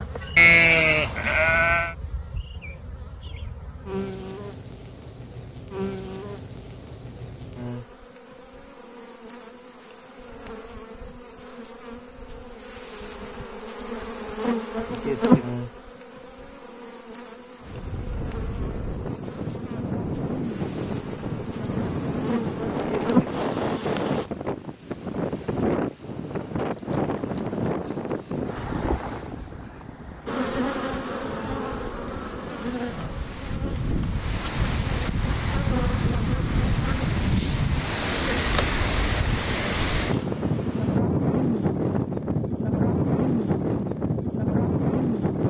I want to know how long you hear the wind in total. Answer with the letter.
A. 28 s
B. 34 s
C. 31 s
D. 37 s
A.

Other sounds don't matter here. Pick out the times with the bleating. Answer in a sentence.
The bleating can be heard from 0.3 to 1.9 s.